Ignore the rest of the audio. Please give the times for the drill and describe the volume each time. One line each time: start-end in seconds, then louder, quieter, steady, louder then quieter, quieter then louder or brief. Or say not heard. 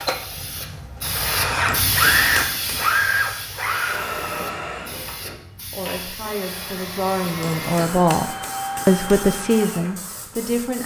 0.0-10.8 quieter.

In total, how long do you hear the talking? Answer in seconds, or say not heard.
5 s.